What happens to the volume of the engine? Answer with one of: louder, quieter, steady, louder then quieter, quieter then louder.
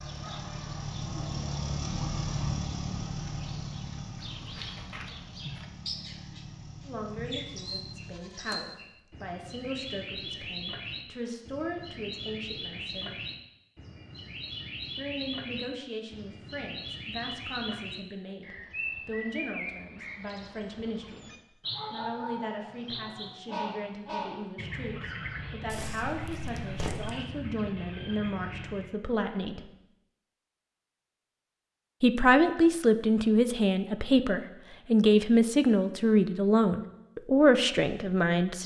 quieter.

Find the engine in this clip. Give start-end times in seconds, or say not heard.
0.0-8.2.